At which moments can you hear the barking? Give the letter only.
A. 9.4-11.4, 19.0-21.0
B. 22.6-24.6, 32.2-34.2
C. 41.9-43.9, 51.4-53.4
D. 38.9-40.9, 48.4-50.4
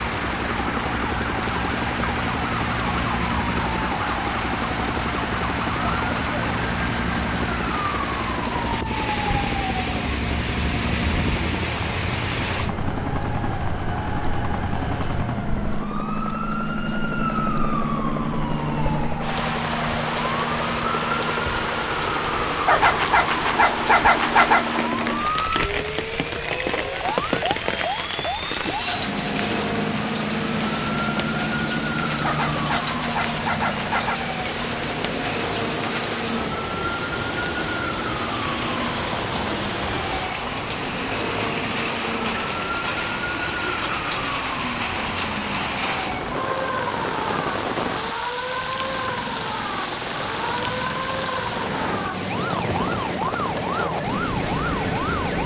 B.